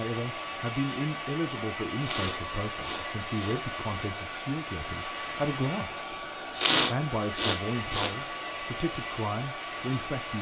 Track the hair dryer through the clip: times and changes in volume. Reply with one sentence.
You can hear the hair dryer from 0.0 to 10.3 s, at a steady volume.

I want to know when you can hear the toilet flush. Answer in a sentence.
You can't hear the toilet flush here.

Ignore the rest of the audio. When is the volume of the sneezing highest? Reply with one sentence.
The volume of the sneezing peaks at 7 seconds.